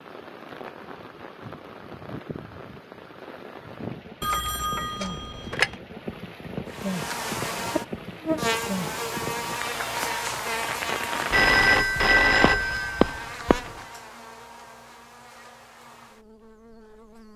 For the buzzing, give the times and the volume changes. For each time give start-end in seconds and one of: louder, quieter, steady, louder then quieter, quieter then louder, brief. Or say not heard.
6.7-17.3 quieter.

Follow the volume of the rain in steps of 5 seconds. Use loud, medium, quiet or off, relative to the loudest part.
medium, loud, loud, off.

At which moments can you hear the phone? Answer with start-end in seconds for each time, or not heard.
4.2-5.8, 11.3-13.7.